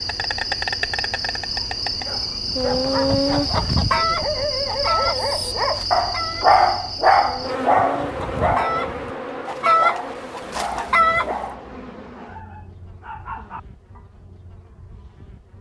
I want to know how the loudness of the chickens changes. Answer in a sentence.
The volume of the chickens goes down, then up.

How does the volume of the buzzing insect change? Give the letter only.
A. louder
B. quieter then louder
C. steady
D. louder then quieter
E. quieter
E.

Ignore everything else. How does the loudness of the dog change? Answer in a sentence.
The loudness of the dog goes up, then down.